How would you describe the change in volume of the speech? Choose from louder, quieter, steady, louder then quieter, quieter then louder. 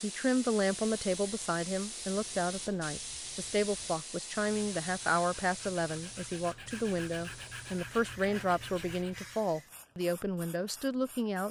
steady.